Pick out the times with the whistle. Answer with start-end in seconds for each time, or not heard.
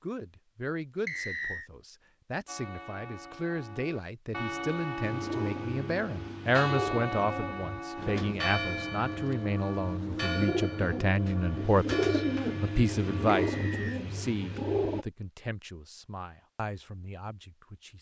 1.1-1.7, 13.3-14.0.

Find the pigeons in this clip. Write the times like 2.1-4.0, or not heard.
5.0-15.1.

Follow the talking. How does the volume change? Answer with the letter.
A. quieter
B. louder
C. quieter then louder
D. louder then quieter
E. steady
D.